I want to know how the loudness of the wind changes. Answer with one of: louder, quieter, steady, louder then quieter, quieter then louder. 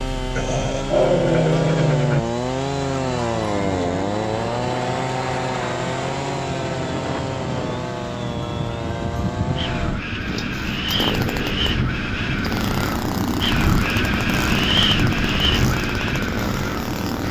louder.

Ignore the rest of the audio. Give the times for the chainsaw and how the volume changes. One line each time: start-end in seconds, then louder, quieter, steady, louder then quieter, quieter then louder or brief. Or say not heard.
0.0-17.2 quieter.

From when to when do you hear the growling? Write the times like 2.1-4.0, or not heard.
0.3-2.2.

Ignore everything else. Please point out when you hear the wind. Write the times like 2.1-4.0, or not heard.
3.5-17.2.